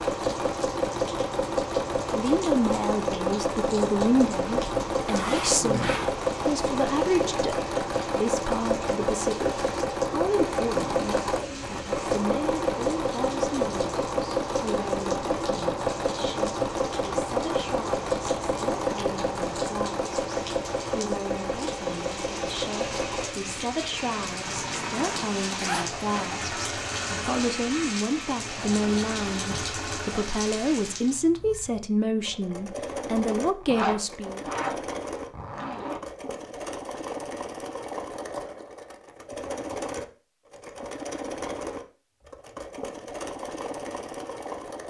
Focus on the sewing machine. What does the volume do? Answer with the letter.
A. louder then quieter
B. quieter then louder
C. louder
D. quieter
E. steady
D.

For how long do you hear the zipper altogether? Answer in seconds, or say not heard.
5 s.